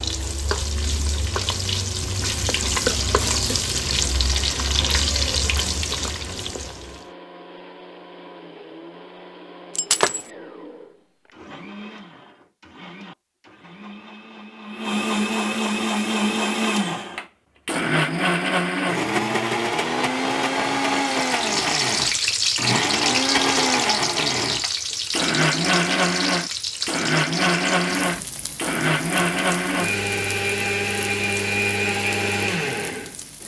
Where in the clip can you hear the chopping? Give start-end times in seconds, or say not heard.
not heard.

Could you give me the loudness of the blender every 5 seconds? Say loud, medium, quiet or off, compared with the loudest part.
quiet, quiet, quiet, loud, loud, loud, loud.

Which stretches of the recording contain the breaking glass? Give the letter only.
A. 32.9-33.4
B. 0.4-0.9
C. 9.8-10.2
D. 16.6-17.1
C.